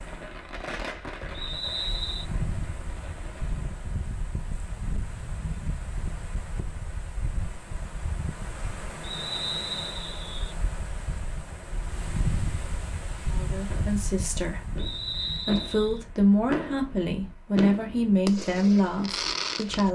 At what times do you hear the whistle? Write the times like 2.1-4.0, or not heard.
1.3-2.2, 9.0-10.6, 14.8-16.0.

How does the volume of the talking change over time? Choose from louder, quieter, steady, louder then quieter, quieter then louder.
louder.